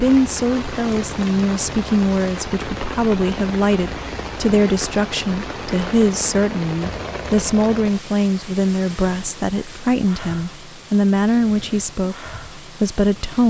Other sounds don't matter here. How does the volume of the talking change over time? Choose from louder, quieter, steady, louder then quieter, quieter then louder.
steady.